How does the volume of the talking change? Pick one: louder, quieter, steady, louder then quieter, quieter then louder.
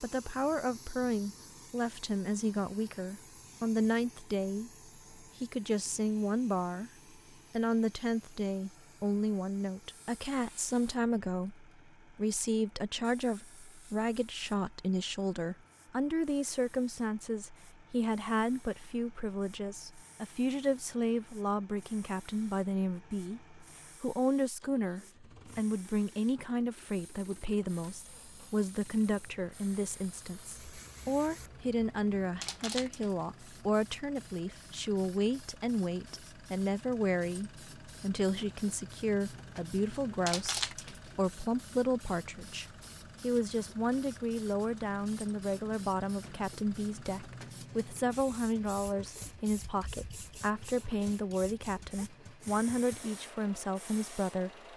steady.